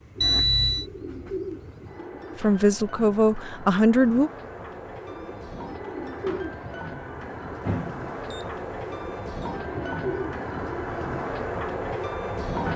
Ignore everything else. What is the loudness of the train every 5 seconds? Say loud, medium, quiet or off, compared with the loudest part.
quiet, medium, loud.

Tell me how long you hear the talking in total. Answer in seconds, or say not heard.
2 s.